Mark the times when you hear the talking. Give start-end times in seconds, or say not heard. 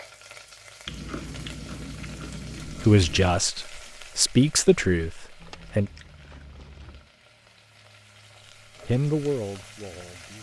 2.6-5.9, 8.8-10.3.